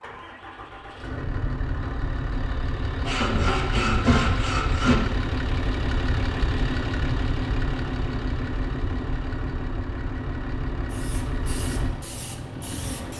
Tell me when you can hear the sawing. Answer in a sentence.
You can hear the sawing from 3.0 to 5.0 s.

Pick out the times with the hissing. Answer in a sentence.
The hissing can be heard from 10.8 to 13.1 s.